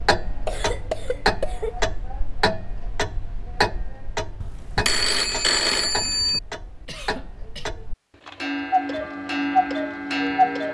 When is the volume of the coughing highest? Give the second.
1 s.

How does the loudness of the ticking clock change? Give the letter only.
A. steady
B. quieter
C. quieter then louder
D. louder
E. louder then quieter
C.